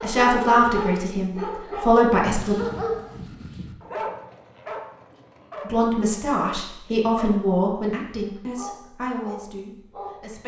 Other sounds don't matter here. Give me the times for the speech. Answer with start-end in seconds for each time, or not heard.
0.0-2.5, 5.7-10.4.